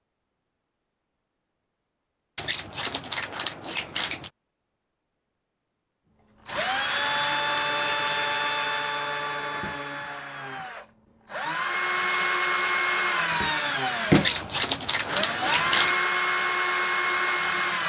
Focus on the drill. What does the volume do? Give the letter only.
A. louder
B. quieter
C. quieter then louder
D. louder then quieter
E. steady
C.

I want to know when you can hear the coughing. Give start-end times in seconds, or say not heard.
not heard.